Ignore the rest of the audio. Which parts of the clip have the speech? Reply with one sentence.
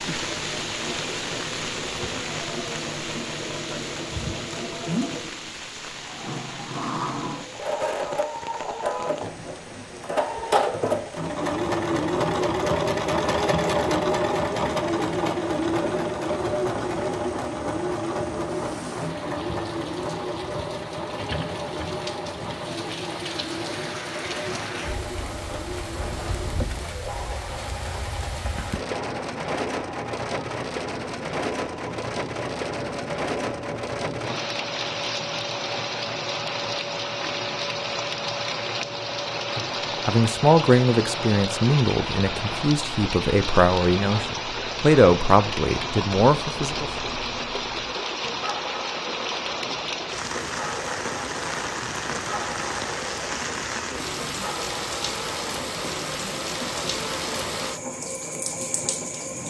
The speech can be heard from 40.0 to 46.9 s.